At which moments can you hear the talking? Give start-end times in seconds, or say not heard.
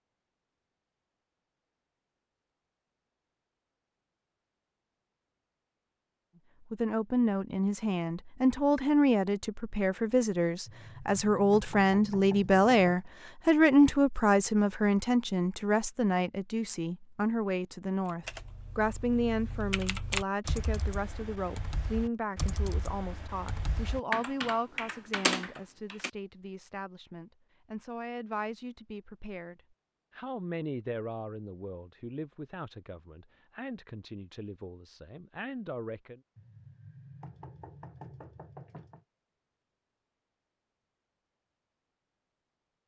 6.6-36.2.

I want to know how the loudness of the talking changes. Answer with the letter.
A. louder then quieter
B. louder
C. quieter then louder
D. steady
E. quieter
E.